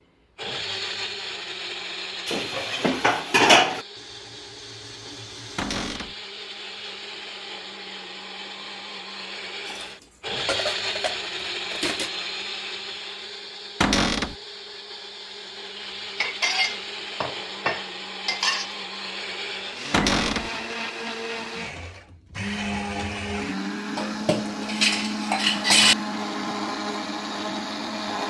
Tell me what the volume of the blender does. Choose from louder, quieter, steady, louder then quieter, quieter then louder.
louder.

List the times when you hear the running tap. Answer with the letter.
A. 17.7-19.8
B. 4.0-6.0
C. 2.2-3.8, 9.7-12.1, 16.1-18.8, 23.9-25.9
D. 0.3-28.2
B.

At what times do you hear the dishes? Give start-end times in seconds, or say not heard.
2.2-3.8, 9.7-12.1, 16.1-18.8, 23.9-25.9.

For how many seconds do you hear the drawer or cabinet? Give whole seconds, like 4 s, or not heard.
2 s.